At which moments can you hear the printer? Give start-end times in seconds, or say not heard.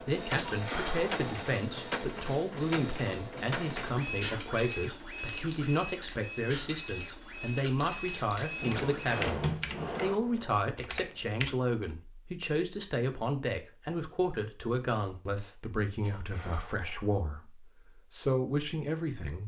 0.0-9.2.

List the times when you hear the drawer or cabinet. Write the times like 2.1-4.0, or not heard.
8.6-10.2.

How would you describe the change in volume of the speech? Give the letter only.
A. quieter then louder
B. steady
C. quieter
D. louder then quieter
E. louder
B.